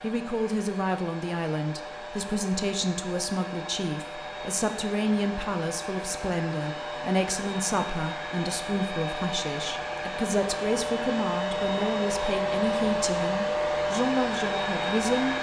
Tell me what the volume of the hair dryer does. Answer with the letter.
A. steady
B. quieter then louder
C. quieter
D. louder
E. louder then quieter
D.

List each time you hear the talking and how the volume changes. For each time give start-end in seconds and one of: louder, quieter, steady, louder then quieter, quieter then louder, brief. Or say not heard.
0.0-15.3 steady.